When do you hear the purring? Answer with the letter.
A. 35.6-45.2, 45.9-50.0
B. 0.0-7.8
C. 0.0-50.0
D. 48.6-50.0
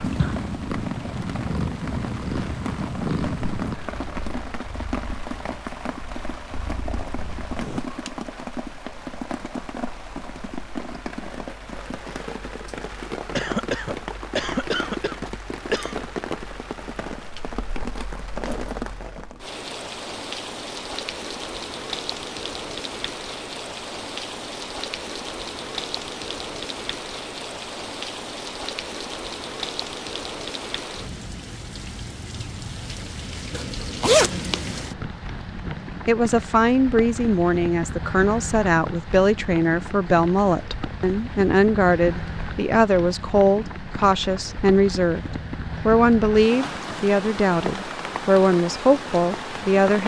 B.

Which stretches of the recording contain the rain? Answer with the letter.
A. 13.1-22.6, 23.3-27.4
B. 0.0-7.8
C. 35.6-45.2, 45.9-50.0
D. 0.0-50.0
D.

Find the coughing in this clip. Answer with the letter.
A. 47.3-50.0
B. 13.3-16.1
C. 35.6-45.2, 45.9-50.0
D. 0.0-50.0
B.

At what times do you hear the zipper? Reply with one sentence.
The zipper can be heard from 33.5 to 34.9 s.